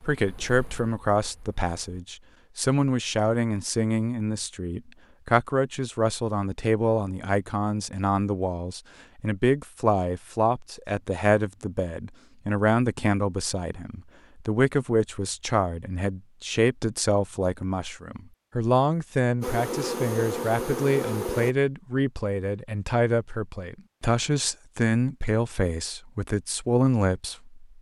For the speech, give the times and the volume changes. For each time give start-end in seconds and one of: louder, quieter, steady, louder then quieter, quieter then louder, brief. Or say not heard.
0.0-27.6 steady.